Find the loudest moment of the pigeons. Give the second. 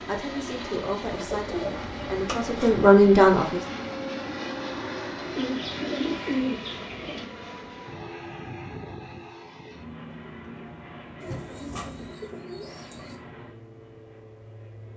6 s.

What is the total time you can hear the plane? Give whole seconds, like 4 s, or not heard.
15 s.